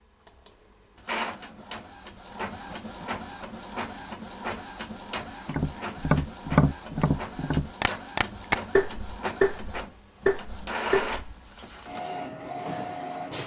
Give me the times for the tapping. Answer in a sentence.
You can hear the tapping from 5.5 to 11.2 s.